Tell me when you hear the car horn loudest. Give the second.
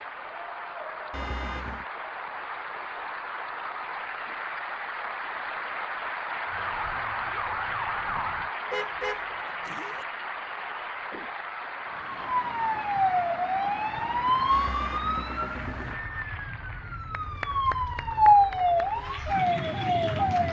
9 s.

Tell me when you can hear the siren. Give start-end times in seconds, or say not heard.
6.5-8.6, 11.9-20.4.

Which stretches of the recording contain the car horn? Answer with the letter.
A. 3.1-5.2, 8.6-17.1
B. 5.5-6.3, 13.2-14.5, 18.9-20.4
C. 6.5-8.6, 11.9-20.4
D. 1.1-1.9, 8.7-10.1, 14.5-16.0
D.